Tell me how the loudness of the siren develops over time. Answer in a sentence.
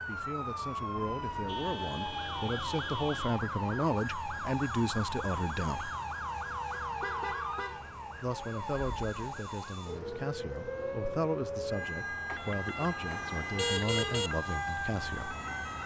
The volume of the siren stays about the same.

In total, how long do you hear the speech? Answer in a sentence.
You can hear the speech for 13 seconds altogether.